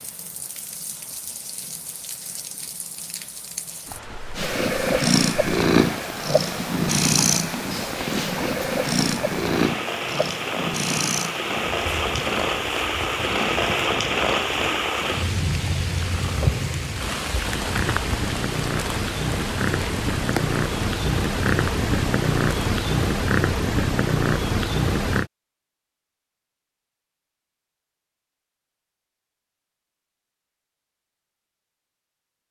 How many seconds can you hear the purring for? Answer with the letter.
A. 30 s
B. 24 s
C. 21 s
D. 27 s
C.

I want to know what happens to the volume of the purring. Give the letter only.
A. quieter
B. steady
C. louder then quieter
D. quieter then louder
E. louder
D.